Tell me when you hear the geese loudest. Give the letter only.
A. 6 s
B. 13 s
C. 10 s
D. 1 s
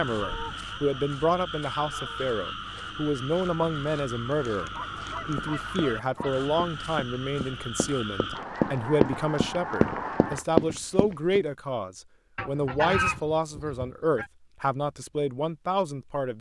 B.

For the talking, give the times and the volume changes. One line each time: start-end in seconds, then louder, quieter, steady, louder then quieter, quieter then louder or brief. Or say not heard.
0.0-16.3 steady.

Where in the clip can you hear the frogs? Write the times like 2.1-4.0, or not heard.
0.0-8.4.